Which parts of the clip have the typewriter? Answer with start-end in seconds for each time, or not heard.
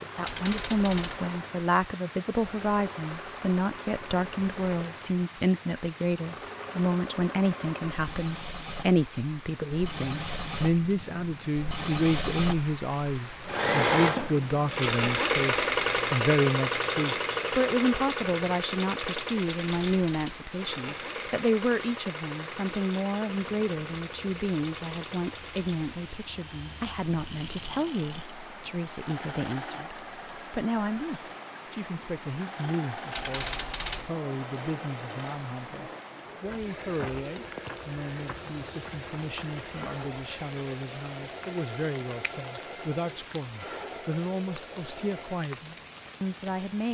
0.2-1.2, 19.6-20.4, 33.1-34.1.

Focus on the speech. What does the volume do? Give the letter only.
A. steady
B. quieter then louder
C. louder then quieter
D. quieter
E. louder
D.